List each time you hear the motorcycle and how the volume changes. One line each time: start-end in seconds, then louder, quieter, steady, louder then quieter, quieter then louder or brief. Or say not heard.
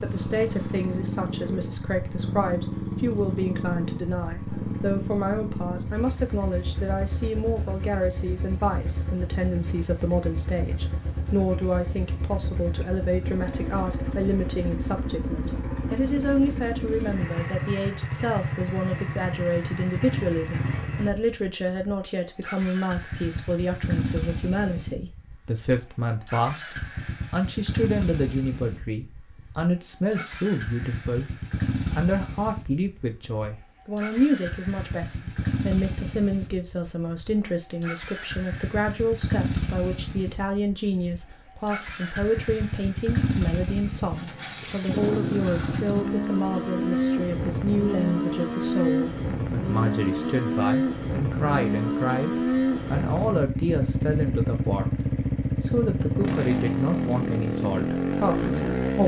0.0-59.0 louder.